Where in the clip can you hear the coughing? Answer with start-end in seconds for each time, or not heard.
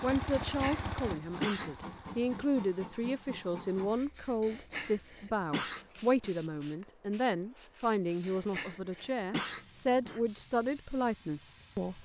0.5-1.7, 4.4-6.3, 8.2-10.2.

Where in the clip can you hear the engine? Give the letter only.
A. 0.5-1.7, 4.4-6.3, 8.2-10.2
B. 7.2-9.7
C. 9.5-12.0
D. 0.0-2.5
D.